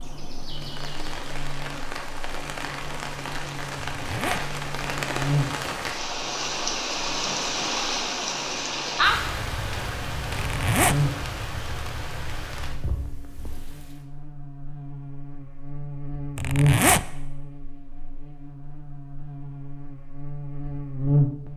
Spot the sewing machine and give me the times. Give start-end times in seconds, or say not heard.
not heard.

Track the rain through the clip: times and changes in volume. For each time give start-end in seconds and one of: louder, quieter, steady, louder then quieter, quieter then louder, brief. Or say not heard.
0.0-14.0 louder then quieter.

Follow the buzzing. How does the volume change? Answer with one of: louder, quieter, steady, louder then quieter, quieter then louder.
louder then quieter.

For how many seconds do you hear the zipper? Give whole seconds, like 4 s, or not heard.
2 s.